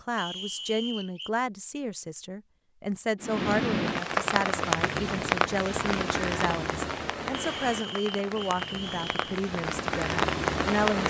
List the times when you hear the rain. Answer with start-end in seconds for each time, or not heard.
3.2-11.0.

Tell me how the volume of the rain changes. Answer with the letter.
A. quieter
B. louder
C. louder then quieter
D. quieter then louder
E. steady
D.